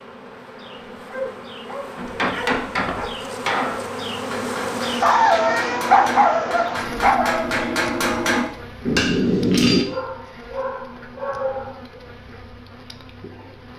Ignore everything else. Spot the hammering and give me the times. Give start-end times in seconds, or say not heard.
1.9-9.8.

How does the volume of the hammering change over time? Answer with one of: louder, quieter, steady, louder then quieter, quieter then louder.
quieter then louder.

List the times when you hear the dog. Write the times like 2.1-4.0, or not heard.
1.1-3.0, 5.0-7.5, 9.8-12.0.